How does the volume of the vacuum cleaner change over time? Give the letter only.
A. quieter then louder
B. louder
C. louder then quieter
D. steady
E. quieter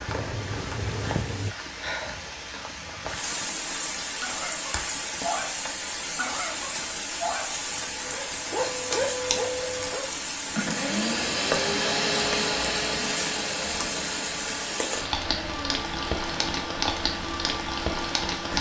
C.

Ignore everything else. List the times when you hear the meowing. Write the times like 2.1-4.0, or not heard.
0.1-1.6.